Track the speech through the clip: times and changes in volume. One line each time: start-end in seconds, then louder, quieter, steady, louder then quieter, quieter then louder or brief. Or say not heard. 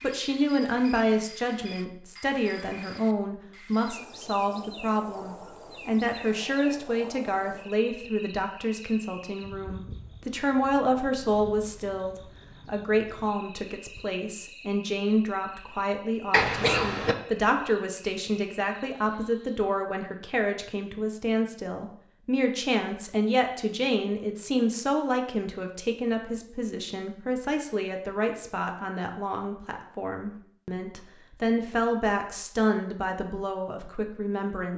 0.0-34.7 steady.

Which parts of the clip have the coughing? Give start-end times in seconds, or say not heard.
16.3-17.1.